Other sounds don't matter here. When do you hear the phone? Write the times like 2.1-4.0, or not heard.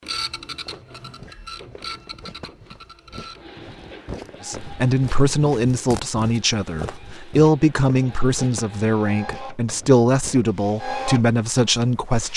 not heard.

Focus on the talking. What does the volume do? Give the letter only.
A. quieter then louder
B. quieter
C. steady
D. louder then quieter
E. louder
C.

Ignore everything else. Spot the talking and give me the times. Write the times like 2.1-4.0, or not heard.
4.4-12.3.